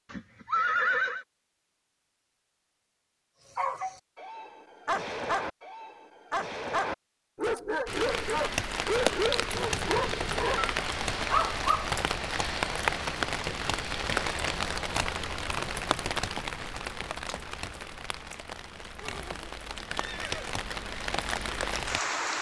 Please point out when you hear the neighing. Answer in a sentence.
You can hear the neighing from 0.1 to 1.2 s, from 9.5 to 10.5 s and from 18.9 to 20.6 s.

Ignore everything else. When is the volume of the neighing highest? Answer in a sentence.
The volume of the neighing peaks at 1 second.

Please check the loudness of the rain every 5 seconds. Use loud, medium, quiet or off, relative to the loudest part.
off, loud, loud, medium, loud.